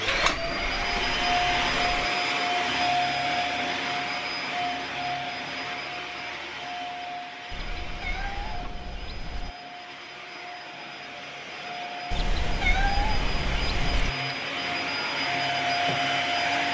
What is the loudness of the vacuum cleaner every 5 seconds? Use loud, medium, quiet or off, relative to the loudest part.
loud, medium, medium, loud.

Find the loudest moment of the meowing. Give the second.
13 s.